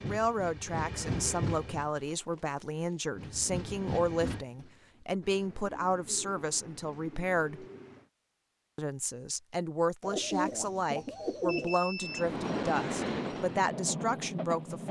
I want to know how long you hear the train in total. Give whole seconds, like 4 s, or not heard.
7 s.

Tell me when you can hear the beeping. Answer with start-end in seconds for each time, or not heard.
11.4-12.3.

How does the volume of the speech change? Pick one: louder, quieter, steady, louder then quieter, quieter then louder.
steady.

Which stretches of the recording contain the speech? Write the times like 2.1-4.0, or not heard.
0.0-7.7, 8.8-14.8.